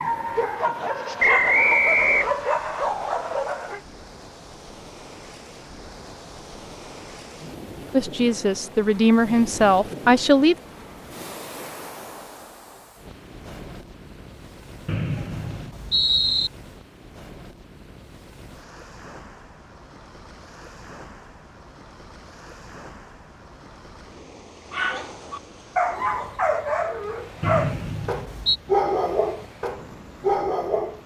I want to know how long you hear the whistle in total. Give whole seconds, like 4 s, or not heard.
4 s.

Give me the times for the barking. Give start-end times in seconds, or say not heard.
0.0-3.8, 24.7-31.0.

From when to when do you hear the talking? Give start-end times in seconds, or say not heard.
7.9-10.6.